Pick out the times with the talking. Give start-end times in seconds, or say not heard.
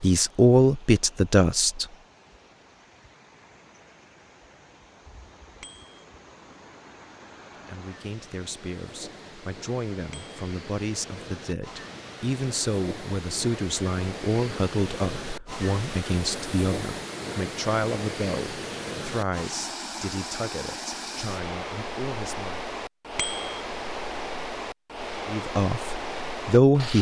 0.0-1.9, 7.7-22.6, 25.2-26.9.